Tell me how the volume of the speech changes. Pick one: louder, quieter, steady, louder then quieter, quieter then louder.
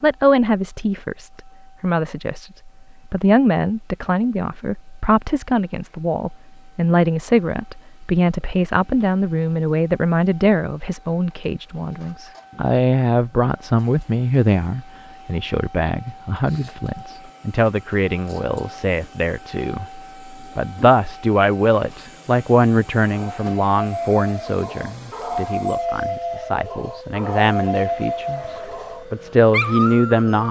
steady.